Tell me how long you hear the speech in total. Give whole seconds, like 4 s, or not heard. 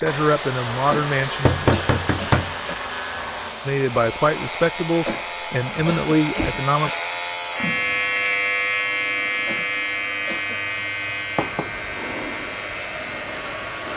5 s.